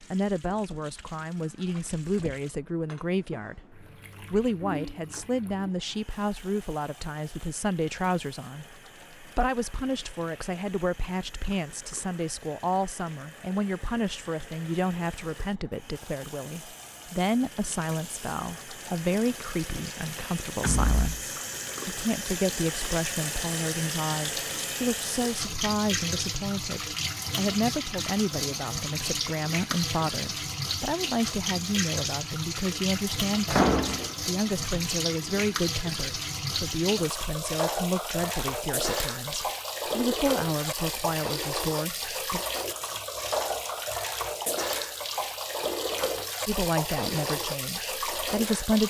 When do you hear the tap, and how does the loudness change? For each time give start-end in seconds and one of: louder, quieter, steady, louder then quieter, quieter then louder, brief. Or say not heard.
0.0-48.8 louder.